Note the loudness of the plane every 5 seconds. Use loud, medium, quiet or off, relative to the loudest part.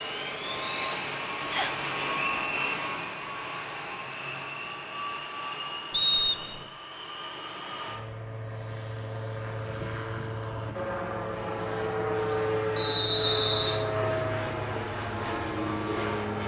loud, medium, loud, loud.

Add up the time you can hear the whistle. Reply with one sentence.
You can hear the whistle for 3 seconds altogether.